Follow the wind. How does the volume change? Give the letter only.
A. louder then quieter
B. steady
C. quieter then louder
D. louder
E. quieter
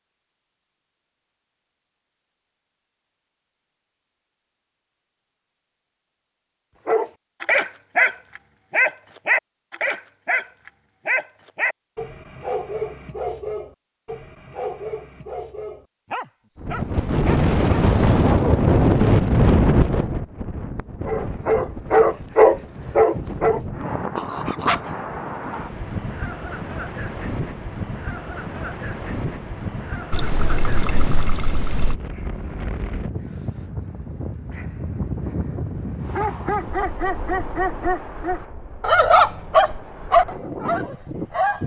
E.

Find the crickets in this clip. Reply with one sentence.
You can't hear the crickets here.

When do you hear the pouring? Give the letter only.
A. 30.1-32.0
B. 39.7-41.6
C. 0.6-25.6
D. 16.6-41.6
A.